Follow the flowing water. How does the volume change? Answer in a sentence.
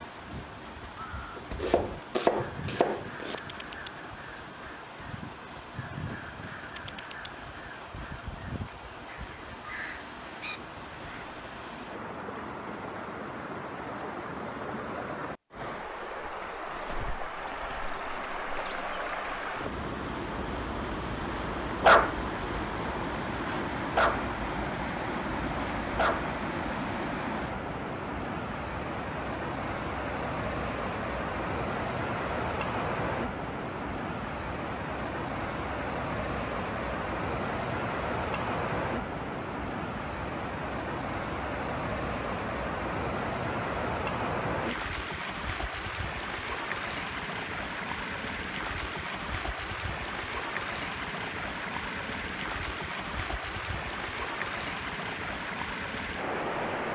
The volume of the flowing water goes up.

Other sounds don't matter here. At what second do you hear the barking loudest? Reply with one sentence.
The loudest moment of the barking is at 22 seconds.